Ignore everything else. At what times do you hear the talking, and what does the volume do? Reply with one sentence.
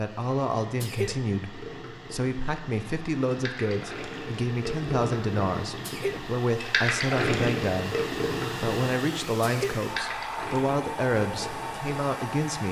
You can hear the talking from 0.0 to 12.6 s, at a steady volume.